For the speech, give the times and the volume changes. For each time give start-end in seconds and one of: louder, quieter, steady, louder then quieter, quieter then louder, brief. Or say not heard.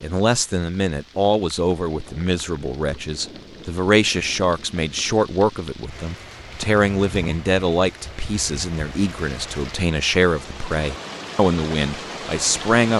0.0-12.9 steady.